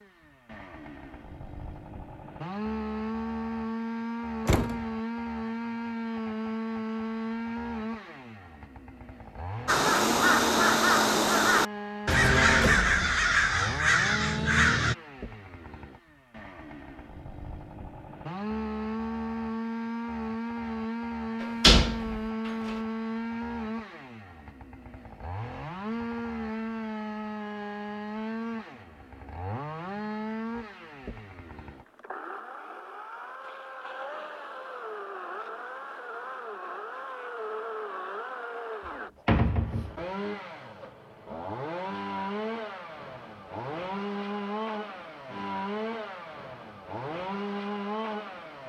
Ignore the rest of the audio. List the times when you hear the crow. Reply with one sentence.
You can hear the crow from 9.7 to 14.9 s.